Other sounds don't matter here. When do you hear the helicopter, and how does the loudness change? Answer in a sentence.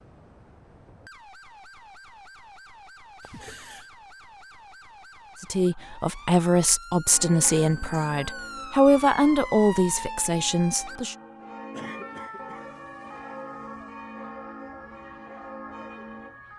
The helicopter can't be heard in this clip.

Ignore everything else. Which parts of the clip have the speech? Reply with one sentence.
You can hear the speech from 5.4 to 11.2 s.